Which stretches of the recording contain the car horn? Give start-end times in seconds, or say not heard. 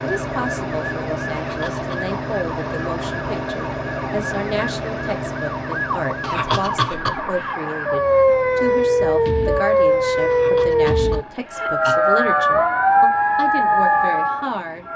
not heard.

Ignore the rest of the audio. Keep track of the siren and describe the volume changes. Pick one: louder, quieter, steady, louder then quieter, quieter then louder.
louder.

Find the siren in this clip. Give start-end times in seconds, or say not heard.
0.0-14.9.